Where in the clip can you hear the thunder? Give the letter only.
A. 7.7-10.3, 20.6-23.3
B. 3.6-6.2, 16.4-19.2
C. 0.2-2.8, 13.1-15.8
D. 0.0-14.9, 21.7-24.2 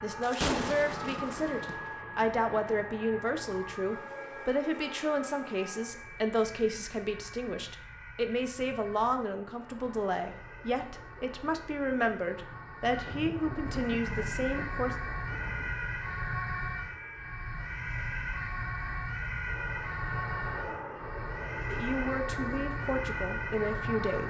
C.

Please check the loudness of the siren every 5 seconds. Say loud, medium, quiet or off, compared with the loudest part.
medium, quiet, medium, loud, loud.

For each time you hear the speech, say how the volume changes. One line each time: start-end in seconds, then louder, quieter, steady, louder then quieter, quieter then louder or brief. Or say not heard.
0.0-14.9 steady
21.7-24.2 brief.